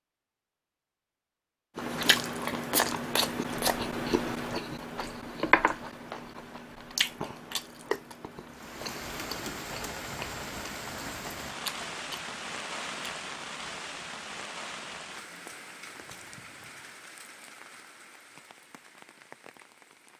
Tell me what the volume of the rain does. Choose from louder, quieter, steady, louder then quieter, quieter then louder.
quieter.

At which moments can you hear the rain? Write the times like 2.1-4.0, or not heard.
8.5-20.1.